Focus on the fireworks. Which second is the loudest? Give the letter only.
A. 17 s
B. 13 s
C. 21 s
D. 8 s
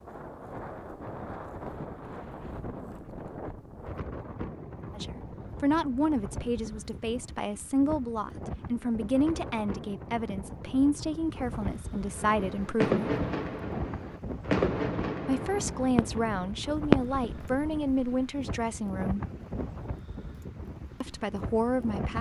A.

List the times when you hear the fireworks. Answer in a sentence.
You can hear the fireworks from 12.1 to 18.3 s.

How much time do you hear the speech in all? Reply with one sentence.
The speech can be heard for 13 seconds in total.